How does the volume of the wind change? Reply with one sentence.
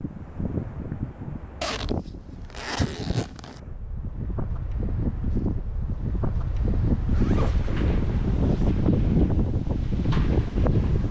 The loudness of the wind goes up.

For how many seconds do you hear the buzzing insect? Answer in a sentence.
You can't hear the buzzing insect here.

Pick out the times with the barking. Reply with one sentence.
The barking can't be heard in this clip.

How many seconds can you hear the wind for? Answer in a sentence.
You can hear the wind for 11 seconds altogether.